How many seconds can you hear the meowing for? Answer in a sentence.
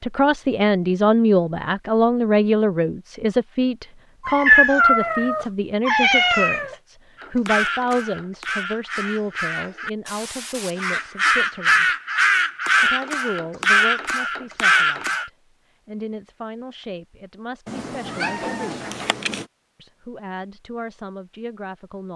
The meowing can be heard for 4 seconds in total.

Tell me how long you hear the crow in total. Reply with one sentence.
The crow can be heard for 8 seconds in total.